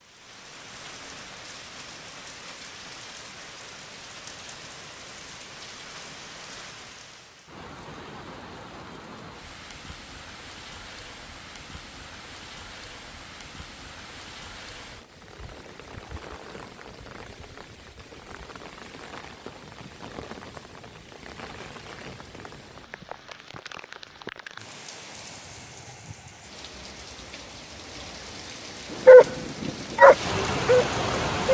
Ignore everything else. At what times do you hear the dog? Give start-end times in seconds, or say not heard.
29.1-31.5.